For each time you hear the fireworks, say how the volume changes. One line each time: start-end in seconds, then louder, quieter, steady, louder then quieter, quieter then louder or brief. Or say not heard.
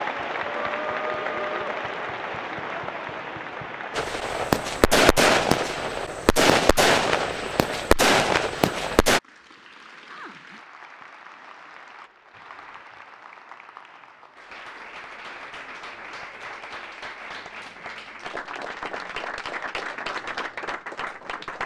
3.9-9.2 quieter then louder.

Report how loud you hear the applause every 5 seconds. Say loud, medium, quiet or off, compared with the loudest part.
loud, quiet, quiet, medium, loud.